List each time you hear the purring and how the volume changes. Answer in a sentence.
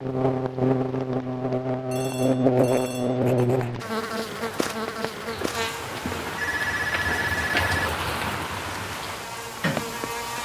The purring can't be heard in this clip.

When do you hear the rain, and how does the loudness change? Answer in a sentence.
The rain can be heard from 0.0 to 10.3 s, getting louder.